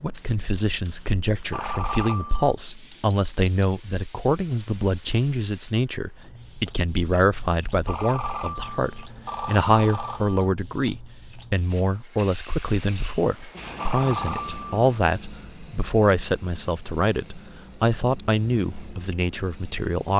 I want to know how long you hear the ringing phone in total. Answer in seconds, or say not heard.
5 s.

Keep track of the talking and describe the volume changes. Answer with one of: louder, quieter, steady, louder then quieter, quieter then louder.
steady.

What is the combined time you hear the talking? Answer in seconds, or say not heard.
20 s.